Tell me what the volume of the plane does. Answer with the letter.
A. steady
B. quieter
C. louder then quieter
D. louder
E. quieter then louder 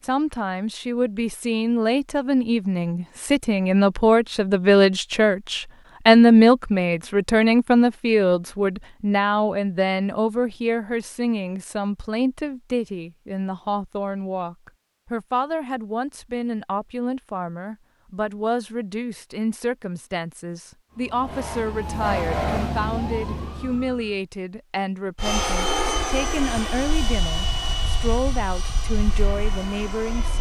B.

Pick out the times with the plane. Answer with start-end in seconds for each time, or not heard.
25.2-30.3.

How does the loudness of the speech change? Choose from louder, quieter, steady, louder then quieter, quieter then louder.
quieter.